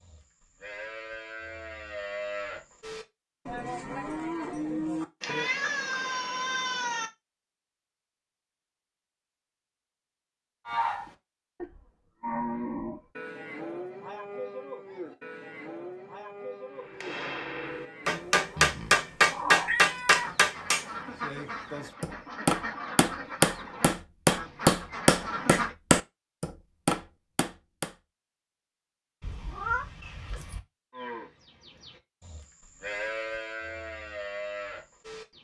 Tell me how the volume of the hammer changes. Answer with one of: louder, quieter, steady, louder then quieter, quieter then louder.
steady.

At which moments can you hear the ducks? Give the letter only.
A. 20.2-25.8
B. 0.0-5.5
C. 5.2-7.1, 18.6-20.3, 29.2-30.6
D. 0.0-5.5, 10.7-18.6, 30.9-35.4
A.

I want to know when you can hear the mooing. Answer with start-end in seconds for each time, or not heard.
0.0-5.5, 10.7-18.6, 30.9-35.4.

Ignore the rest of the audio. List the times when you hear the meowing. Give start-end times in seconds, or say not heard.
5.2-7.1, 18.6-20.3, 29.2-30.6.